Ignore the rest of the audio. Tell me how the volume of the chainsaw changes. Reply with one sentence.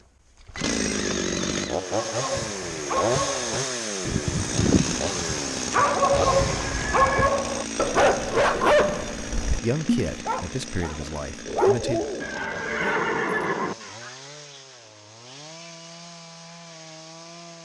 The volume of the chainsaw goes down.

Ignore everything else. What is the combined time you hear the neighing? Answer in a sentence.
The neighing can be heard for 4 seconds in total.